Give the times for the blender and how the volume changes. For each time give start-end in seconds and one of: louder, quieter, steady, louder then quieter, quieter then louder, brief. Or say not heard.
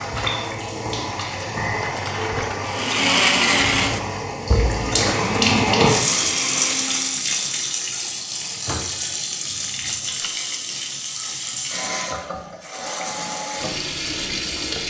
2.6-7.2 quieter.